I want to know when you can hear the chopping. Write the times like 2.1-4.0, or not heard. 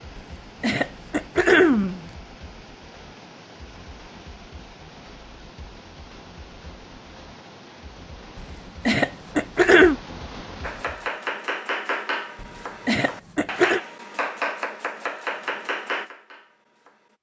10.6-17.1.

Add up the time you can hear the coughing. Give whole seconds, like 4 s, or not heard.
5 s.